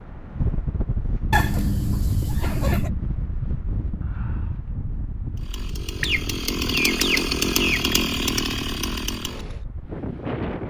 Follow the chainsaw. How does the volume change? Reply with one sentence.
The loudness of the chainsaw goes up, then down.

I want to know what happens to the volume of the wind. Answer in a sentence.
The loudness of the wind goes down.